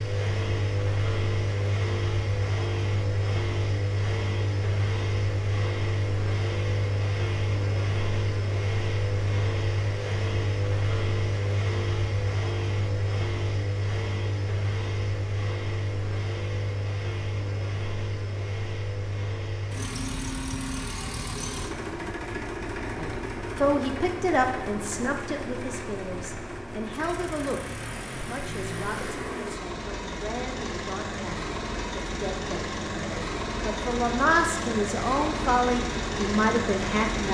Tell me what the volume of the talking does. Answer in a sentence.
The loudness of the talking goes down, then up.